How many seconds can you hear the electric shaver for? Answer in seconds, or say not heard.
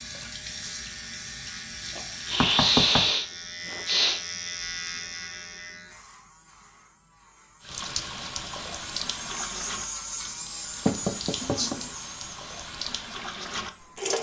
14 s.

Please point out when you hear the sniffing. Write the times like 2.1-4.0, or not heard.
2.2-4.2, 11.4-11.9.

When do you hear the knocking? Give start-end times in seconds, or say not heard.
2.4-3.1, 10.8-11.8.